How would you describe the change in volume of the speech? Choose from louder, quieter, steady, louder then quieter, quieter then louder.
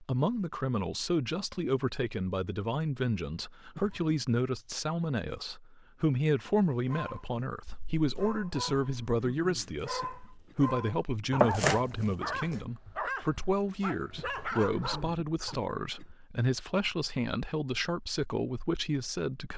steady.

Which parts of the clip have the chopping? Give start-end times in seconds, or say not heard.
11.4-12.6.